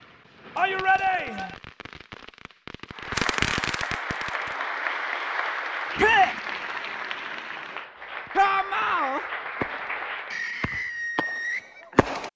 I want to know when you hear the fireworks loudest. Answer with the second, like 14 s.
3 s.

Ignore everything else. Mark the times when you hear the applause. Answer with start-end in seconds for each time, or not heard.
2.9-10.4.